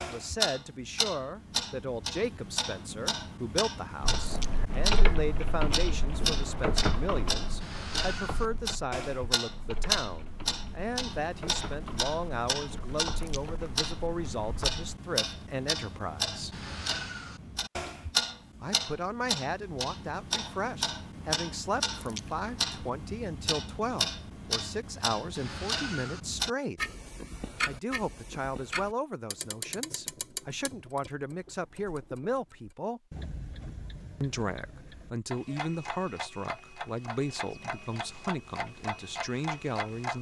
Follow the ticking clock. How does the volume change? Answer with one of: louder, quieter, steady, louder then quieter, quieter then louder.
quieter.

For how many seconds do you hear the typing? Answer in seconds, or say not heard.
11 s.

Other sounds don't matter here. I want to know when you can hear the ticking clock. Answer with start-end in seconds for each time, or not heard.
0.0-40.1.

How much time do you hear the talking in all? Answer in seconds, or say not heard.
36 s.